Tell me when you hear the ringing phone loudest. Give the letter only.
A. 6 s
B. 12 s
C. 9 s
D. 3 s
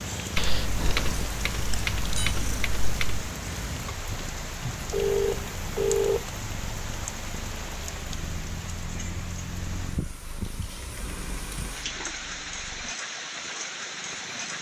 A.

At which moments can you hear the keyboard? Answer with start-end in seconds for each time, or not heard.
0.3-3.2.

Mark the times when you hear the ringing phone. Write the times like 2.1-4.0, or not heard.
1.7-2.4, 4.9-6.2, 10.9-12.6.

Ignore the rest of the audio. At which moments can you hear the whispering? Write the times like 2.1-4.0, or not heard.
not heard.